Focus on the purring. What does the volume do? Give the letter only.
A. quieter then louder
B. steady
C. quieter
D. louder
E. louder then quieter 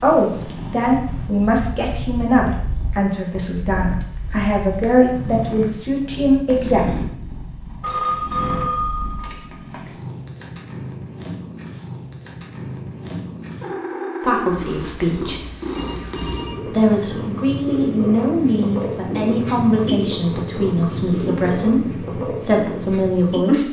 D.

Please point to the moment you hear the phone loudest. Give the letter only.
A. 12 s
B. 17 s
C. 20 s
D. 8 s
D.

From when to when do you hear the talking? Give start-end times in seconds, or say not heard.
0.0-6.8, 14.2-15.4, 16.6-23.6.